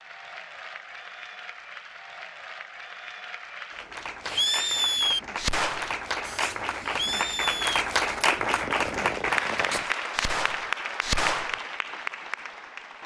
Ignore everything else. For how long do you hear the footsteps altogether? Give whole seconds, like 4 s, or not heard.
not heard.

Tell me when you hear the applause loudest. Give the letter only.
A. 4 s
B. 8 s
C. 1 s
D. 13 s
B.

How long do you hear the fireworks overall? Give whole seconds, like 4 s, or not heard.
7 s.